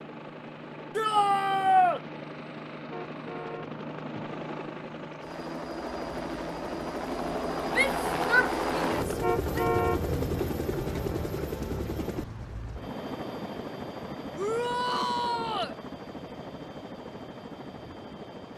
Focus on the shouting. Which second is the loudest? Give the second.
2 s.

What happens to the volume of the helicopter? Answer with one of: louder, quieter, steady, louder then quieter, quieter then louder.
louder then quieter.